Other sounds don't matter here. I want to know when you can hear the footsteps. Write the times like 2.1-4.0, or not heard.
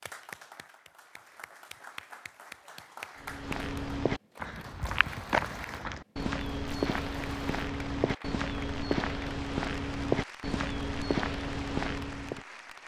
3.2-12.4.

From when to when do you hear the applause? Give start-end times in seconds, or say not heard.
0.0-12.8.